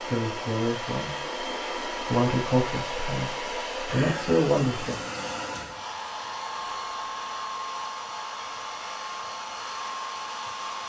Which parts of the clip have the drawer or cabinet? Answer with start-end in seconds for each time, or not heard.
not heard.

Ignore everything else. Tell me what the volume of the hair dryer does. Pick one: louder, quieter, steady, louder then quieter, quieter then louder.
steady.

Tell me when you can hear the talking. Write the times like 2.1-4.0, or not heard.
0.1-5.0.